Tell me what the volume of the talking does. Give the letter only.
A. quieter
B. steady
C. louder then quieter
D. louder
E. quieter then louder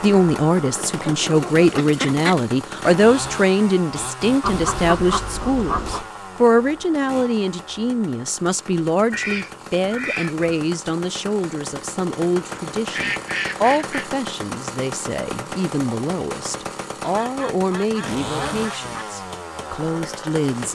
A.